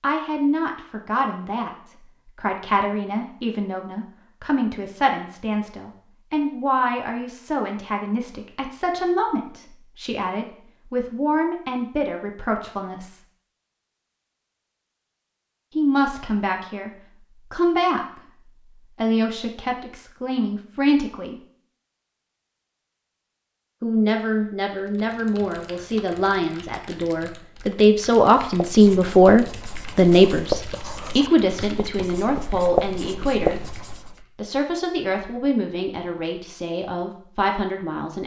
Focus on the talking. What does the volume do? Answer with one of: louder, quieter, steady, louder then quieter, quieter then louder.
louder then quieter.